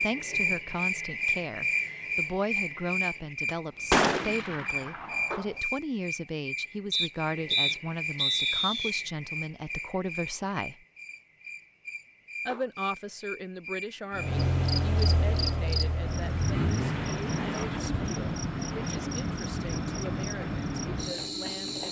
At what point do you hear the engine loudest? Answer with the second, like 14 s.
15 s.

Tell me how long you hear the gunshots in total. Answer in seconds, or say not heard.
2 s.